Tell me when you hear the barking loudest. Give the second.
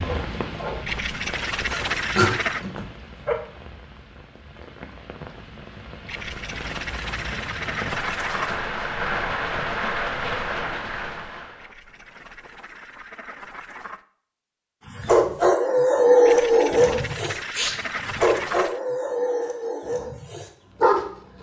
16 s.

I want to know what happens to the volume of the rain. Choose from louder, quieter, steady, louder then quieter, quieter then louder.
quieter then louder.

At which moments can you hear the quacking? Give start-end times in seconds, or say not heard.
0.8-2.6, 6.0-8.7, 11.6-14.1, 16.2-18.8.